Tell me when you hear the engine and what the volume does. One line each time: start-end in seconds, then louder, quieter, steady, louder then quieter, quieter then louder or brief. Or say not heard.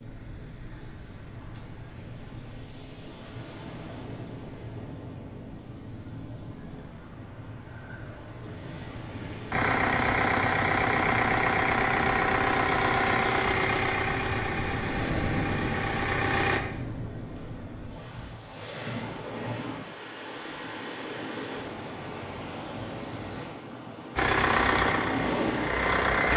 9.5-16.6 quieter
24.1-26.3 brief.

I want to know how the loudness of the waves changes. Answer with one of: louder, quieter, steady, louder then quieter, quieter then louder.
louder.